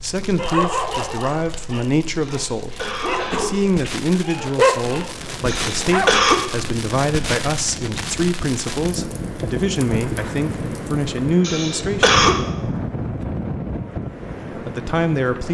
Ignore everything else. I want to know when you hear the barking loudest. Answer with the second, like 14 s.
5 s.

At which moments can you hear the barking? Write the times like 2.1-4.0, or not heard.
0.3-6.2.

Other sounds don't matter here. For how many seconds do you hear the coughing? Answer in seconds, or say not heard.
3 s.